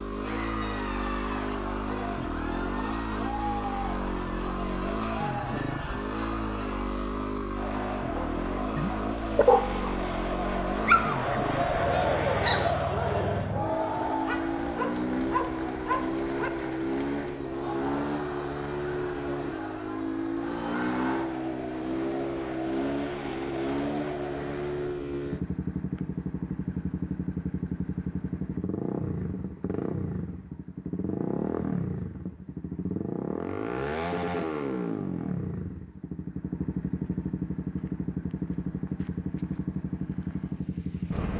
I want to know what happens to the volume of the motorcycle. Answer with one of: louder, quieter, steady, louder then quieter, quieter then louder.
steady.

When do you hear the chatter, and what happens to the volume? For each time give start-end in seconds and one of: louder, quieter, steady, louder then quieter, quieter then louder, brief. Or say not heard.
0.1-25.0 louder then quieter.